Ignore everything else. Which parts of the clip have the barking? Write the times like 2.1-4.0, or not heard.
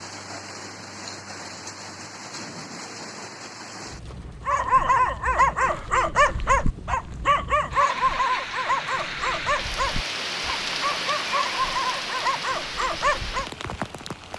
4.5-13.5.